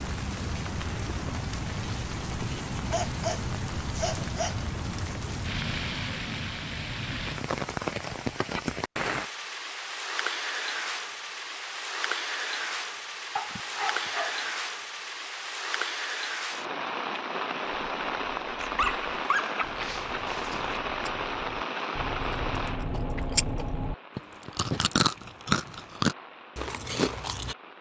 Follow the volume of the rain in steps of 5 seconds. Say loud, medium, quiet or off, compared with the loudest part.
loud, loud, loud, loud, loud, quiet.